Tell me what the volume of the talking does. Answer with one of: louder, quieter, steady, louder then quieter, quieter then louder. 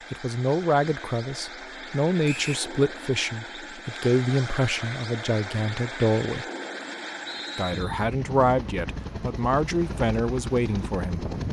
steady.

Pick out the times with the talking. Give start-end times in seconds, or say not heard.
0.1-6.5, 7.5-11.3.